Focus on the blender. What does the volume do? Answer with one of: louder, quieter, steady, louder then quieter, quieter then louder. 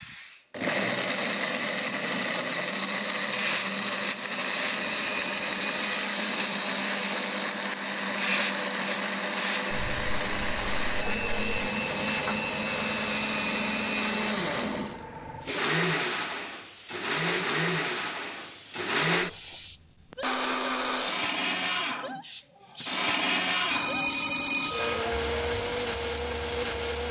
steady.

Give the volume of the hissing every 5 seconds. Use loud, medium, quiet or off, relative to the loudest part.
loud, loud, medium, medium, loud, medium.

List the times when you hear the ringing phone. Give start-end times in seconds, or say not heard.
4.8-6.0, 13.1-14.2, 23.7-25.1.